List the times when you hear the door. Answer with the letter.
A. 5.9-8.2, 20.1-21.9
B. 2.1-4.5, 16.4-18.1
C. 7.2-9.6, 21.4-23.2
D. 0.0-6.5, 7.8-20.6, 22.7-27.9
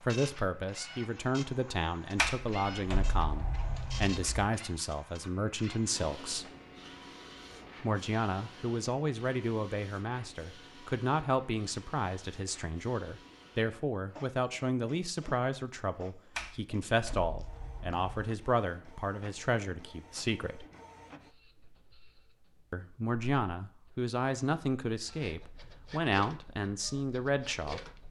B.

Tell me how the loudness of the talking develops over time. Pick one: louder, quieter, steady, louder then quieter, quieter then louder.
steady.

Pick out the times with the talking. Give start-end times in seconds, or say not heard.
0.0-6.5, 7.8-20.6, 22.7-27.9.